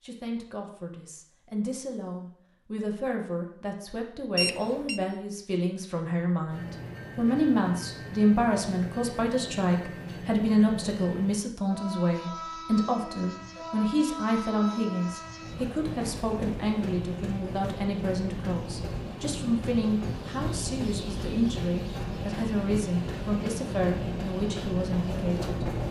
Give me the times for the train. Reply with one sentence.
The train can be heard from 6.5 to 25.8 s.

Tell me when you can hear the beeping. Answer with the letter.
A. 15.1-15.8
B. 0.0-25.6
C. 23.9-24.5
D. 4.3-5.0
D.